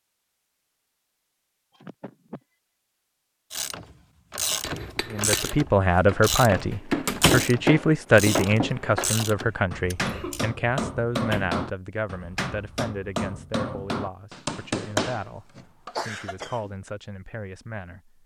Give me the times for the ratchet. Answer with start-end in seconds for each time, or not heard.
3.5-10.4.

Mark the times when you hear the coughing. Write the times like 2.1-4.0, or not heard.
1.7-2.4, 9.8-10.4, 15.9-16.7.